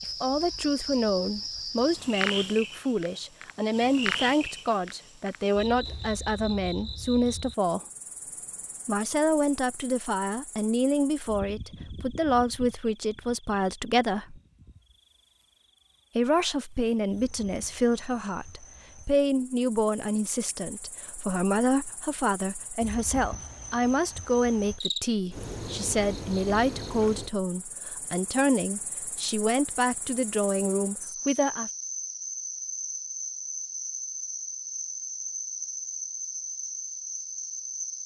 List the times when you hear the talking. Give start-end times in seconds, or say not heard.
0.2-7.8, 8.8-14.4, 16.1-31.7.